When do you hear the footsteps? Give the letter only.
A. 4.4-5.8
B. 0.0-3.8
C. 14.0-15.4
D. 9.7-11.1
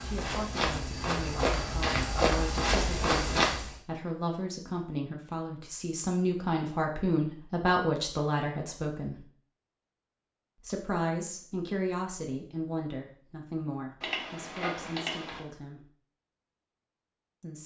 B.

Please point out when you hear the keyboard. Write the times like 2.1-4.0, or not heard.
14.0-15.4.